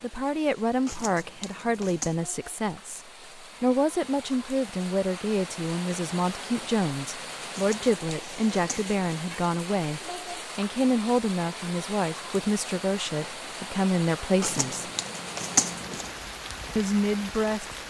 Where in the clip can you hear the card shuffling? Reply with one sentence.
You can hear the card shuffling from 0.8 to 2.1 s, from 7.5 to 8.9 s and from 14.4 to 16.1 s.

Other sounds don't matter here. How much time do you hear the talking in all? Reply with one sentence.
You can hear the talking for 16 seconds altogether.